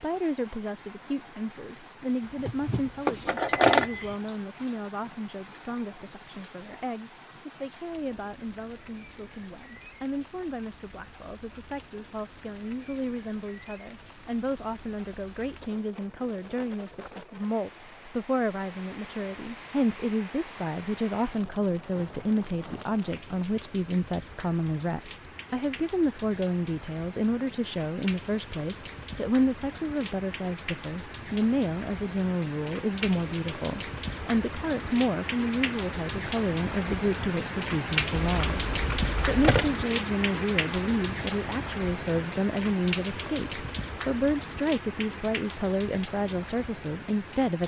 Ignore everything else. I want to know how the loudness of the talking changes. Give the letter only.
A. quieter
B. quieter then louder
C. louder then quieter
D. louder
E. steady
D.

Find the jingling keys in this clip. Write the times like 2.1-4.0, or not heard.
2.2-4.2, 38.1-39.8.